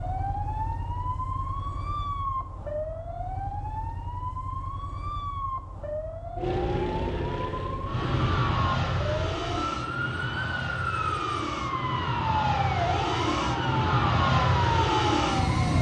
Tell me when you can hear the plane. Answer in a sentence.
You can hear the plane from 6.3 to 15.7 s.